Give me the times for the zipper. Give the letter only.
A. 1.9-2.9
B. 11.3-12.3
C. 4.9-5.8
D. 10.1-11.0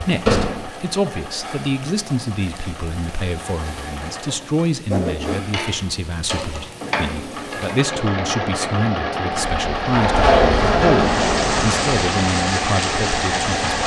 C.